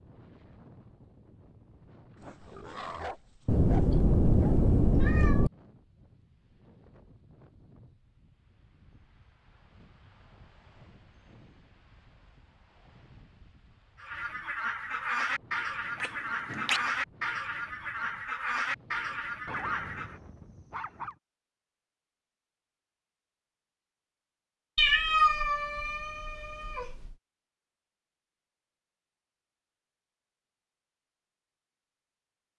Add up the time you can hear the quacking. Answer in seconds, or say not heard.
6 s.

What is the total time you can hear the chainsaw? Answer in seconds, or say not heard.
not heard.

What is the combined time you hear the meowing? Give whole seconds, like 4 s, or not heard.
5 s.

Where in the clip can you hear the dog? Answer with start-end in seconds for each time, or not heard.
2.1-4.7, 19.4-21.1.